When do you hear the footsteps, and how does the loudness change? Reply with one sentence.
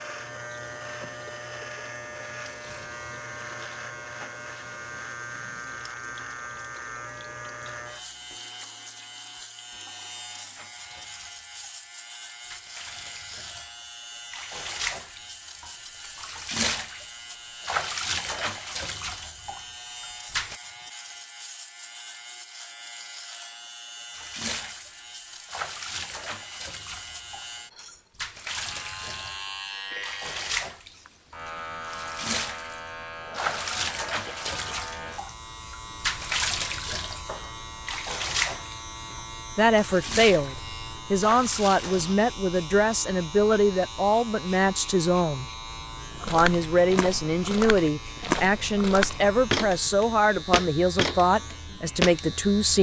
The footsteps can be heard from 46.1 to 52.2 s, getting louder.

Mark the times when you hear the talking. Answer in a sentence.
You can hear the talking from 39.5 to 45.5 s and from 46.2 to 52.7 s.